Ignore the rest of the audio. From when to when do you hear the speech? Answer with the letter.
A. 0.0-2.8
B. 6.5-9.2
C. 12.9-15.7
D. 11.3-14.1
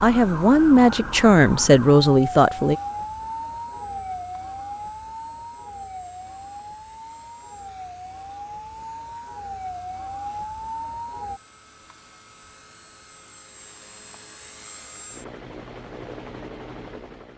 A.